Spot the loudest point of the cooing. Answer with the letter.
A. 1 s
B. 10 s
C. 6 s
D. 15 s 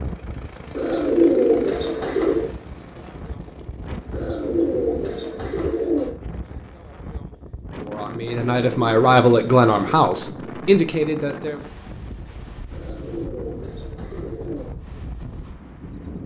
A.